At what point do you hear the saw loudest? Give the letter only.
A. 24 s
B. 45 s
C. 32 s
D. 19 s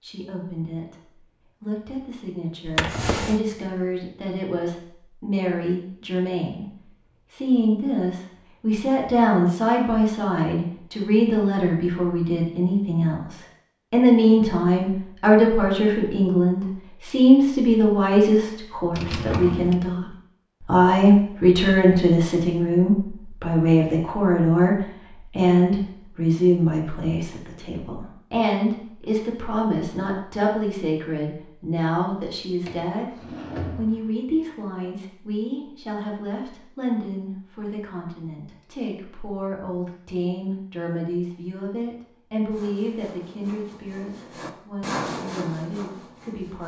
B.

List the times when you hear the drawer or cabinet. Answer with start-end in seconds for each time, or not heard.
2.6-3.4, 18.9-19.8, 32.6-34.1.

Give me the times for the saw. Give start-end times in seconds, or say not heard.
42.5-46.6.